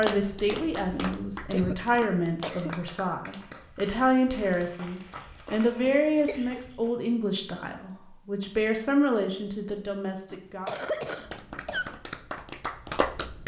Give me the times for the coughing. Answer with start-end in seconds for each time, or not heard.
0.5-2.9, 5.8-6.6, 10.3-11.9.